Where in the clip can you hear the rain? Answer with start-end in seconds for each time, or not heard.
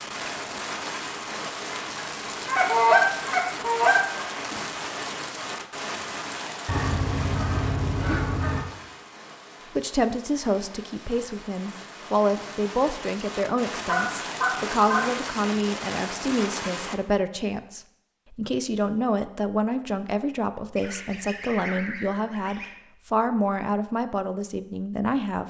0.0-17.0.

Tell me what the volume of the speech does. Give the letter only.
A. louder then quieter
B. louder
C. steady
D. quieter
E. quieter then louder
C.